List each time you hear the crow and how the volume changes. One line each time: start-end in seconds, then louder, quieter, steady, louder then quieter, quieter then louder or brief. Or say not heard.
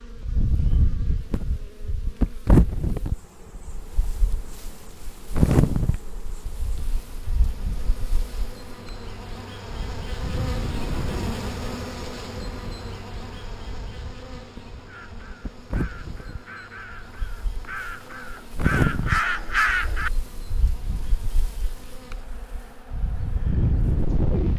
14.8-20.1 louder.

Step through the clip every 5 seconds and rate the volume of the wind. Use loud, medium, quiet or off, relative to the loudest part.
loud, loud, medium, loud, loud.